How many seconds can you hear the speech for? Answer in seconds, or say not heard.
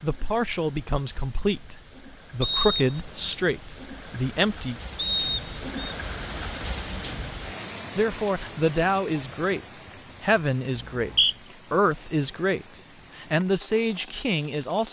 12 s.